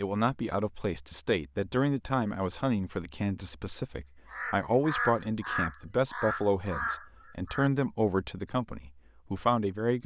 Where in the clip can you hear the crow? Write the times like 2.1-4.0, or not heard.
4.3-7.7.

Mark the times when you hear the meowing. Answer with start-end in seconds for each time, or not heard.
not heard.